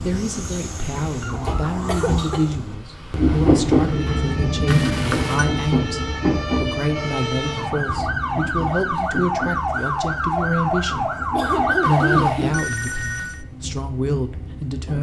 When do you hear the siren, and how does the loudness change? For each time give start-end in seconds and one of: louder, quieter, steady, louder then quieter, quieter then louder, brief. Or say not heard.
0.0-12.3 louder.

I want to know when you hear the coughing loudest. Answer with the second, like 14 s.
12 s.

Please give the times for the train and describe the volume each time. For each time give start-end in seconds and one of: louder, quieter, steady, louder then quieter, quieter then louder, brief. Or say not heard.
0.0-14.9 louder then quieter.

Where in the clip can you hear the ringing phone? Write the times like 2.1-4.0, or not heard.
4.7-5.5, 11.8-13.4.